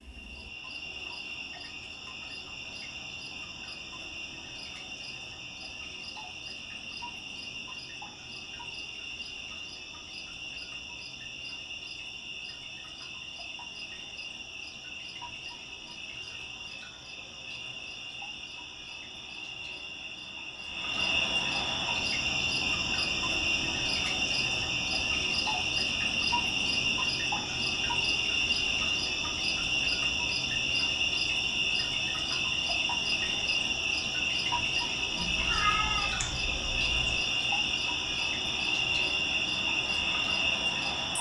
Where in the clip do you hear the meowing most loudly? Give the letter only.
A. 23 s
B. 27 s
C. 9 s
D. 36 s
D.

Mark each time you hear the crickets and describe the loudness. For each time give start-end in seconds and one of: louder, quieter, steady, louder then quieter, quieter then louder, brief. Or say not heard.
0.0-41.1 louder.